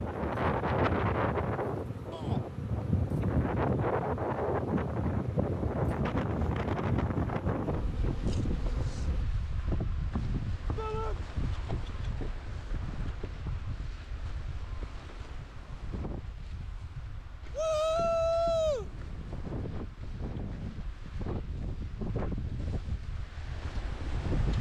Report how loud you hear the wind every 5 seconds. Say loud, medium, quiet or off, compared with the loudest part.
loud, loud, medium, quiet, medium.